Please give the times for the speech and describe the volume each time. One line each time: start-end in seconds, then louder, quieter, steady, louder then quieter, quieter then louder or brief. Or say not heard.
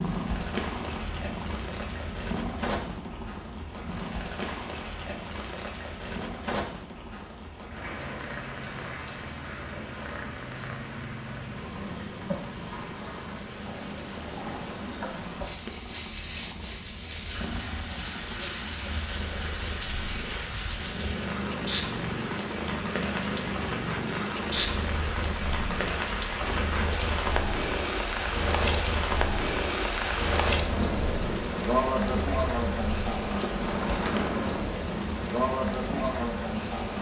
not heard.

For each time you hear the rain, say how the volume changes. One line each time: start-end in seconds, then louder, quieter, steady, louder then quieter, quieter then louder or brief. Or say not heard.
0.0-36.9 louder.